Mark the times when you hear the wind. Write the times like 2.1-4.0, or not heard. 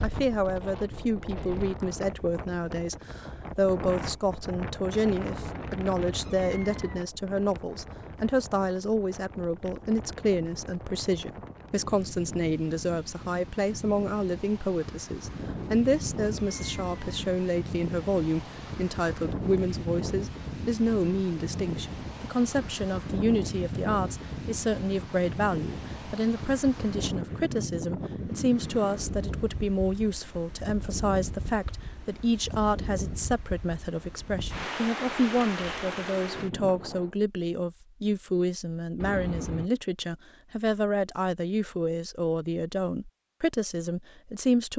0.0-37.1.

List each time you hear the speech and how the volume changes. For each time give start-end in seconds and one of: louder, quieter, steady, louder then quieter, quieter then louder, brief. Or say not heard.
0.0-44.7 steady.